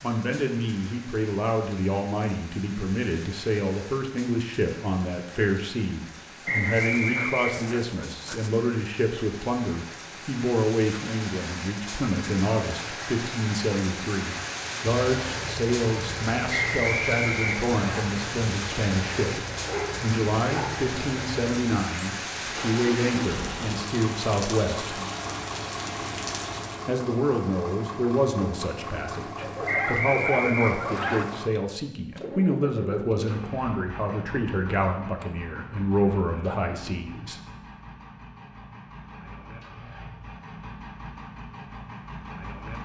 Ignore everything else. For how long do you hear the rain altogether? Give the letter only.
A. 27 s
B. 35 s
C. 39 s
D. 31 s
A.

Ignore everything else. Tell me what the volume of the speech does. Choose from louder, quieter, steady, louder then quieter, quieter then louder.
steady.